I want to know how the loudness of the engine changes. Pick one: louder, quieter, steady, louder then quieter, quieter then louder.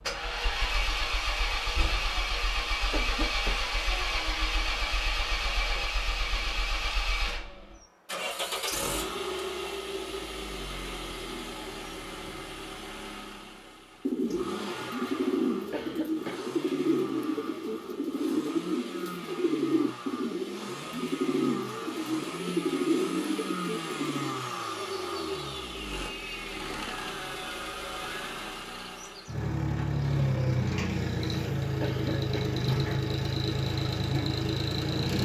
quieter then louder.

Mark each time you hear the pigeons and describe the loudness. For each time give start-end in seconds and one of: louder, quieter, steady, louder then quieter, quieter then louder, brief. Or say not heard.
14.1-24.4 steady.